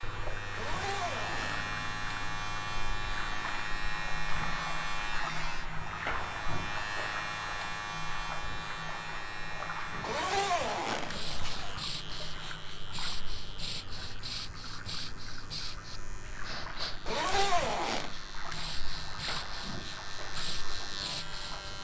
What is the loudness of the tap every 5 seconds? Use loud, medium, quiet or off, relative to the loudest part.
loud, loud, medium, medium, medium.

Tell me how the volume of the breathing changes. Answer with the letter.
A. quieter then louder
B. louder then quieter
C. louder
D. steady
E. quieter
D.